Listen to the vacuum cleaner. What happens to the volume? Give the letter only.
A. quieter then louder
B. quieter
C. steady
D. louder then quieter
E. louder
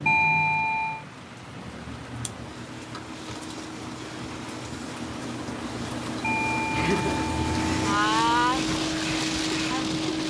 E.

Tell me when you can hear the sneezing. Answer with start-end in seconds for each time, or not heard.
not heard.